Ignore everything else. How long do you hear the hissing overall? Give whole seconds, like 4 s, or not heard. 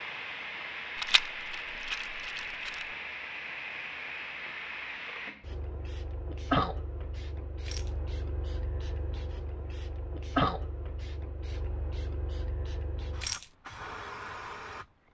15 s.